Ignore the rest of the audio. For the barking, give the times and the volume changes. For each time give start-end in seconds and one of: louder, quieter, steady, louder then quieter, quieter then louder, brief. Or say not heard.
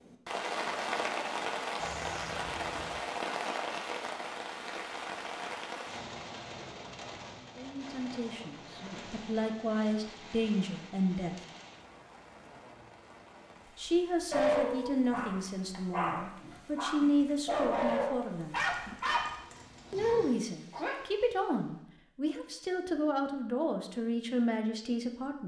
14.3-21.0 louder then quieter.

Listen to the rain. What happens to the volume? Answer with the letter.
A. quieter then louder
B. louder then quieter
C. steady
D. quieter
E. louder
D.